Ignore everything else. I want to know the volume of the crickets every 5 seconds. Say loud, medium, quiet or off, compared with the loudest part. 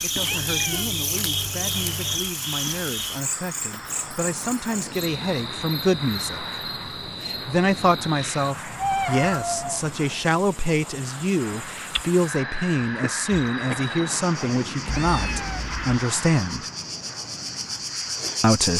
loud, medium, medium, loud.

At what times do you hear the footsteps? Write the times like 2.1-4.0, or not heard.
not heard.